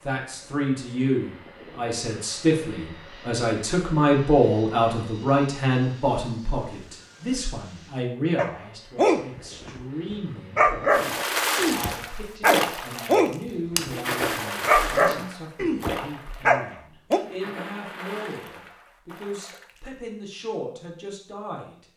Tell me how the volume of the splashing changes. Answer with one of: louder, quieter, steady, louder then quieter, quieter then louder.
quieter.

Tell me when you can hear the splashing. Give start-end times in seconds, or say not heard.
10.9-19.8.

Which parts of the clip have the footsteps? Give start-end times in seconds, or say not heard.
not heard.